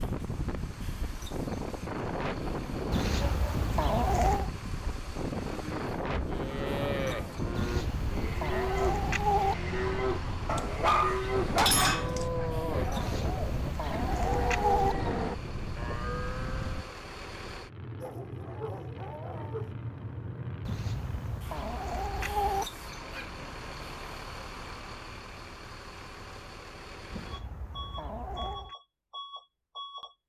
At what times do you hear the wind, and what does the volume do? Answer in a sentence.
The wind can be heard from 0.0 to 16.9 s, at a steady volume.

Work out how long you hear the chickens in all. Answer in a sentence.
You can hear the chickens for 9 seconds altogether.